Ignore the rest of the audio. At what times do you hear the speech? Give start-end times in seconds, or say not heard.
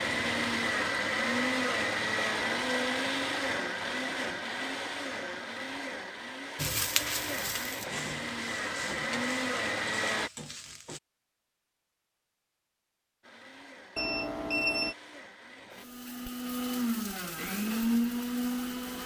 not heard.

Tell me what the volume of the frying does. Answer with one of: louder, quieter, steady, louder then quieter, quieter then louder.
quieter.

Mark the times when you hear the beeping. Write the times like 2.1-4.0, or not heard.
13.9-14.9.